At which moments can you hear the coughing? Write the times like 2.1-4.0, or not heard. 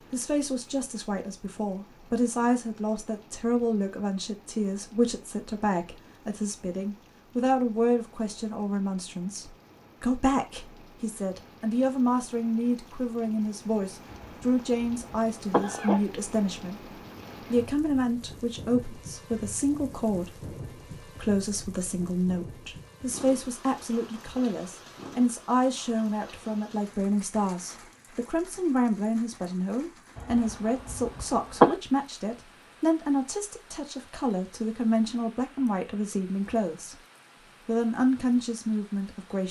14.1-16.1, 30.1-31.8.